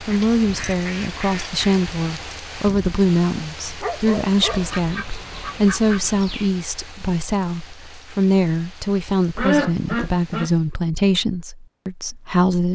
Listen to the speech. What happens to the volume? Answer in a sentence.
The loudness of the speech stays about the same.